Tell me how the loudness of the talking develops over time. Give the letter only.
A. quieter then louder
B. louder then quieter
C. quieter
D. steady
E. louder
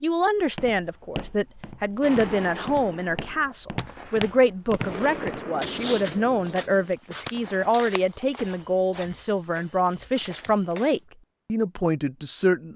D.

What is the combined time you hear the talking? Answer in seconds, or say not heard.
13 s.